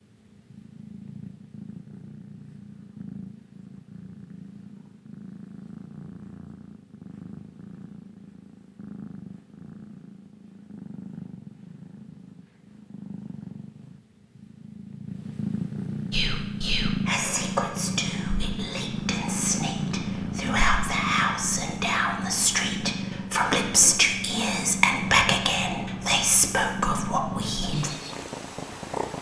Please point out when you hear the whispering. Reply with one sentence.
The whispering can be heard from 16.1 to 27.9 s.